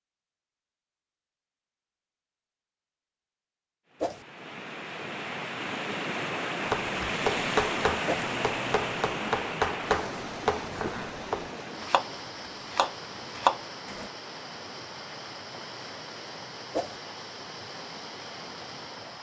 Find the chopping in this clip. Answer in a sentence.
The chopping can be heard from 6.7 to 14.1 s.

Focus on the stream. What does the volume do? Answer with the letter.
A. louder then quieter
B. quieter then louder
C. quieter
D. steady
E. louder
C.